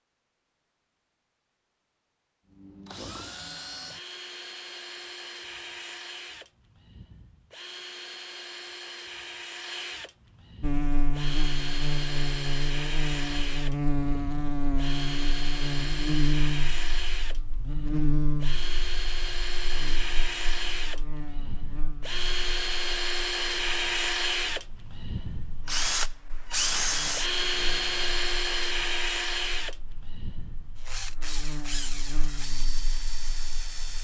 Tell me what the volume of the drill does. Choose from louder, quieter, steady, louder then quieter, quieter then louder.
louder.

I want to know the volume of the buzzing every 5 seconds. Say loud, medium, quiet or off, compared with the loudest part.
off, off, loud, loud, quiet, quiet, quiet.